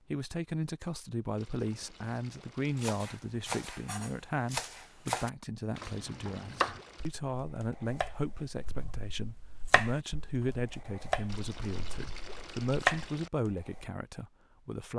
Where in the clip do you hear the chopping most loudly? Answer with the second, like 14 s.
13 s.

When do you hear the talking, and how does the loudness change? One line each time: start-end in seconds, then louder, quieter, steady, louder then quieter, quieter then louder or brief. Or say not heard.
0.1-14.9 steady.